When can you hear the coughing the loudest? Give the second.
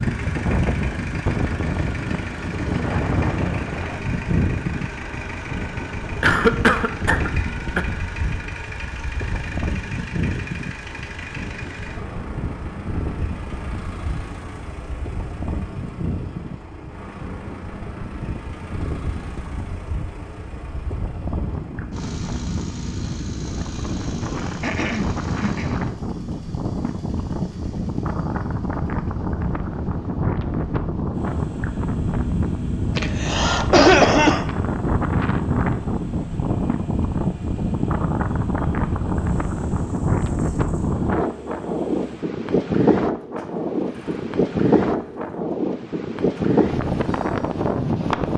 34 s.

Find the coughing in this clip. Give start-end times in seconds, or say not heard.
6.2-7.8, 24.6-25.8, 33.0-34.5.